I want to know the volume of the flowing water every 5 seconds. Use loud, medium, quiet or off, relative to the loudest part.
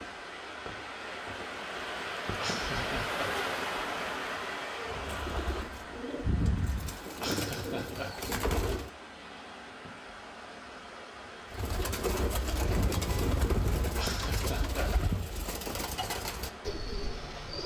loud, medium, medium, medium.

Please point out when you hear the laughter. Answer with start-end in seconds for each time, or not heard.
2.4-3.3, 7.2-8.1, 13.9-14.9.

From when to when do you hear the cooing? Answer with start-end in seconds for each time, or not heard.
4.8-8.9, 11.5-17.6.